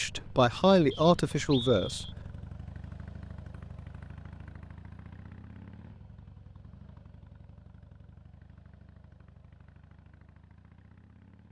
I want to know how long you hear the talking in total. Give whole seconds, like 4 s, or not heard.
2 s.